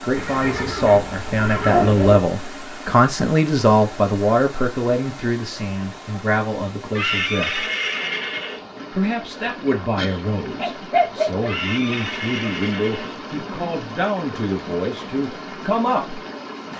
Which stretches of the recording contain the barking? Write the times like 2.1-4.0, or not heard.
1.6-2.3, 9.7-11.4.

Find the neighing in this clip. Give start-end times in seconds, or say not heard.
0.1-2.1, 7.0-8.6, 11.4-13.2.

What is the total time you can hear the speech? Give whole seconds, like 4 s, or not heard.
15 s.